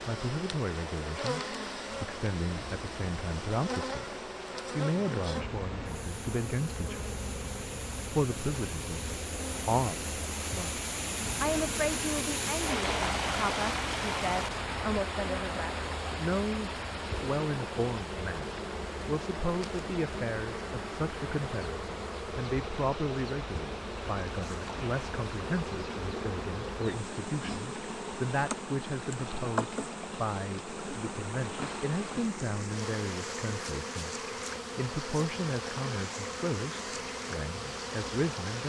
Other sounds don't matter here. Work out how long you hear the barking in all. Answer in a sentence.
The barking can't be heard in this clip.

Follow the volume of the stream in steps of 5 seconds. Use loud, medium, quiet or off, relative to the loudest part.
medium, medium, loud, medium, medium, medium, medium, medium.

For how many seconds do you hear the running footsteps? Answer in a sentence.
You can't hear the running footsteps here.